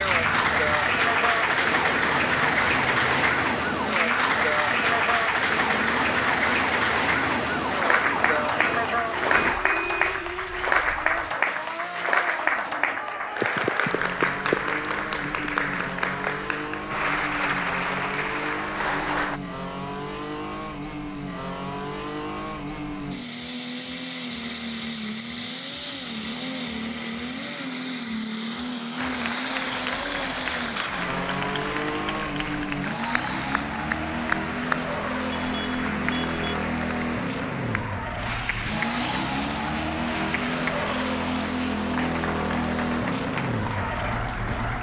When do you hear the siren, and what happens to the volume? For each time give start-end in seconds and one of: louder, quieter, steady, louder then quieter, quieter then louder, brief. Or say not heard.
0.0-9.6 steady.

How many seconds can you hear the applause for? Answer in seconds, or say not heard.
35 s.